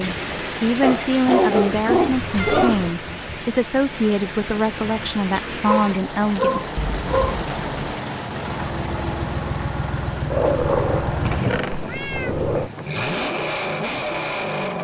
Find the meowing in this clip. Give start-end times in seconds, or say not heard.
2.1-3.0, 6.8-7.4, 11.2-12.3.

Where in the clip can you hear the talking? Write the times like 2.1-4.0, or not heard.
0.0-6.6.